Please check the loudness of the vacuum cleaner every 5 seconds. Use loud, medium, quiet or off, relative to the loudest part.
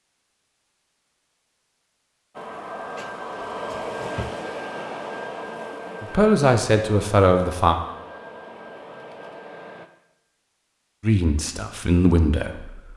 loud, medium, off.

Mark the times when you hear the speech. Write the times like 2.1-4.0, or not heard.
6.0-7.8, 11.0-12.9.